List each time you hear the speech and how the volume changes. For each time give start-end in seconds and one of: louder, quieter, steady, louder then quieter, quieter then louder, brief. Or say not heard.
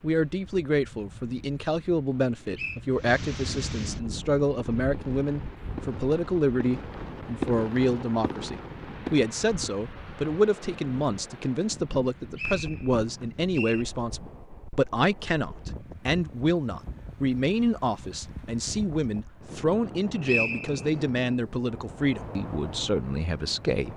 0.0-23.9 steady.